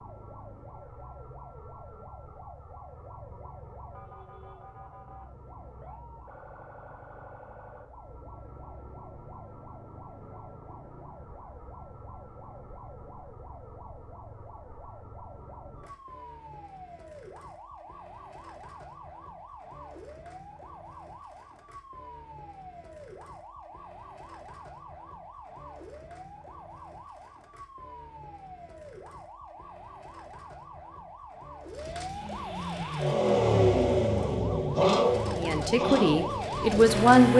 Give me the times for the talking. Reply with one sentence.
The talking can be heard from 35.4 to 37.3 s.